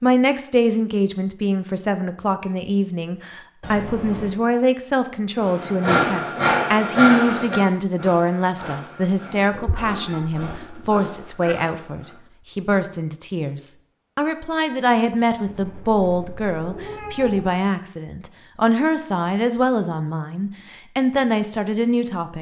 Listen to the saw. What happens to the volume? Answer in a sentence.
The loudness of the saw goes down.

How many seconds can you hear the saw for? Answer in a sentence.
You can hear the saw for 7 seconds altogether.